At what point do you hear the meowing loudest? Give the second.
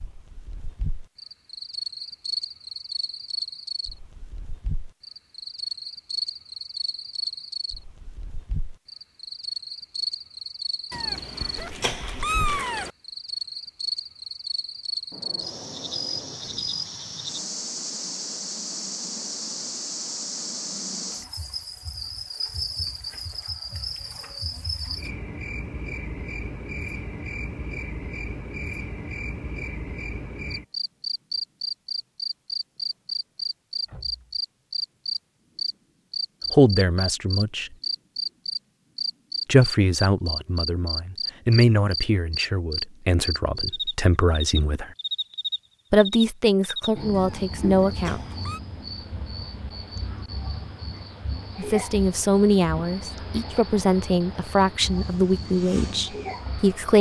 12 s.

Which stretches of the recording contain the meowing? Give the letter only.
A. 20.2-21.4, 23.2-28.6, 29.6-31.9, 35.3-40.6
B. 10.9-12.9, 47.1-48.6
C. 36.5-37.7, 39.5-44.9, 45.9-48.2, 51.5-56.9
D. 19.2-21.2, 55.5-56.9
B.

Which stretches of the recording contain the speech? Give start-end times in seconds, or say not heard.
36.5-37.7, 39.5-44.9, 45.9-48.2, 51.5-56.9.